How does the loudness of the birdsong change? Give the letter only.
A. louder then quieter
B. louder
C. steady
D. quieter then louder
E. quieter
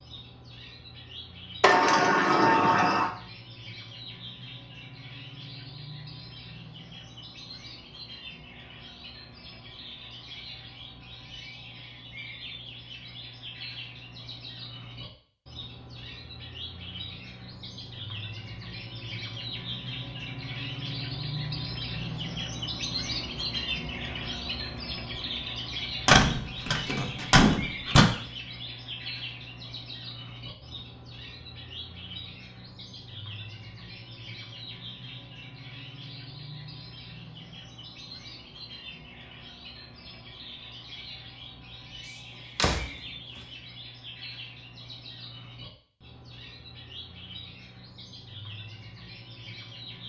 A.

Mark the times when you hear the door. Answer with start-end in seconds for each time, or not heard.
1.6-3.1, 26.1-28.1, 42.0-43.5.